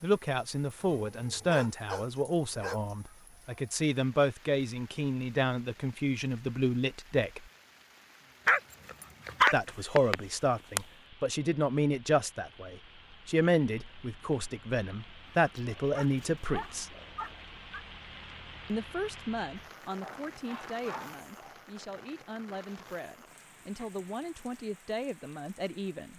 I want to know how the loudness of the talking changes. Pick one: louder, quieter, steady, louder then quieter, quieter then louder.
quieter.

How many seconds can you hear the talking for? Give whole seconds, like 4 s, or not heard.
22 s.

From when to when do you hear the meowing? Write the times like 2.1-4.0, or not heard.
9.4-10.8.